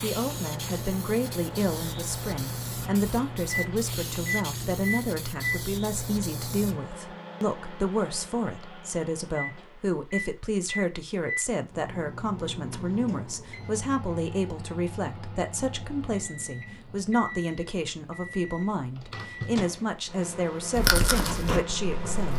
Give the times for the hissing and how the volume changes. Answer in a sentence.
The hissing can be heard from 0.0 to 6.8 s, at a steady volume.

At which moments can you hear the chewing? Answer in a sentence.
The chewing can be heard from 20.8 to 22.3 s.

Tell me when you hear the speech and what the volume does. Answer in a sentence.
The speech can be heard from 0.0 to 22.3 s, at a steady volume.